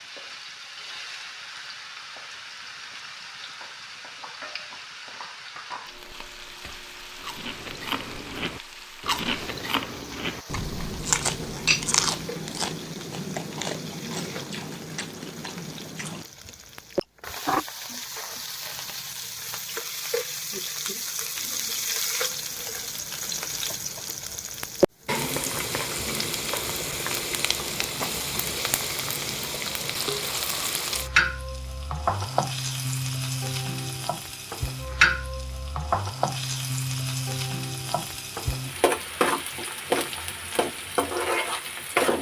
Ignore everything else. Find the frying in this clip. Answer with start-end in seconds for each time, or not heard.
0.0-42.1.